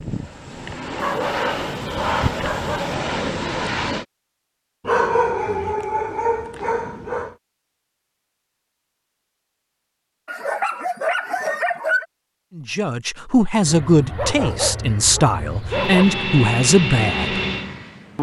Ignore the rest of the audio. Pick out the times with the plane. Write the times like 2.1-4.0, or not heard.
0.0-4.0, 13.6-18.1.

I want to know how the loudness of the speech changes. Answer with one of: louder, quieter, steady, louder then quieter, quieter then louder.
steady.